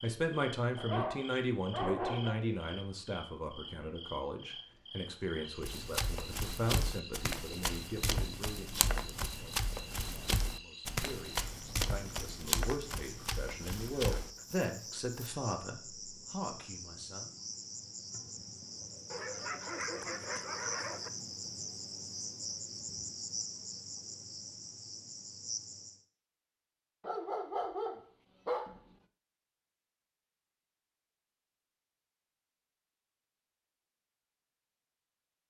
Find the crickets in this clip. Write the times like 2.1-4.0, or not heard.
0.0-26.1.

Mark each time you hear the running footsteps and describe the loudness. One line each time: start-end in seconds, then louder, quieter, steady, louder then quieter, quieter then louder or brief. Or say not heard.
5.6-14.3 steady.